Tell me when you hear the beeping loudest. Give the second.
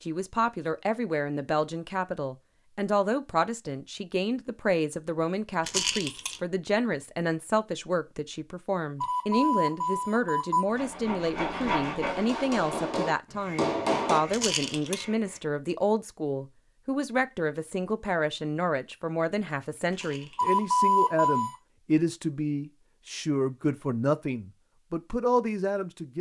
21 s.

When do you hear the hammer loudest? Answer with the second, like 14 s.
14 s.